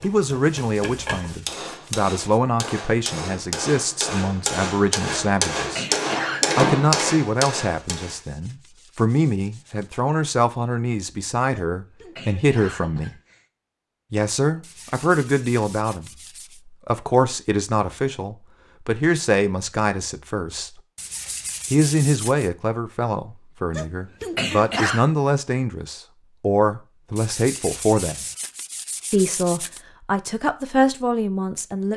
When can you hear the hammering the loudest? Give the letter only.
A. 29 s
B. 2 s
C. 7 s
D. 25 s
C.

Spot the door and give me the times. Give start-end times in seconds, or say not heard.
not heard.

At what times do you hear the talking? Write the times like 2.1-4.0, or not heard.
0.0-5.9, 6.5-13.1, 14.1-20.8, 21.7-28.2, 29.1-31.9.